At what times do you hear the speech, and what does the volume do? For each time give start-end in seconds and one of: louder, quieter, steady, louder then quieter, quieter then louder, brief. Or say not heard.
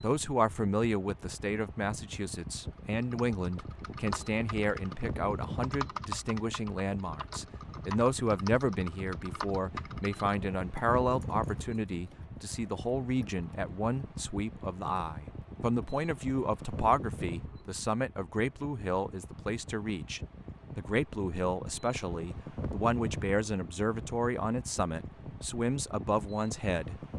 0.0-26.9 steady.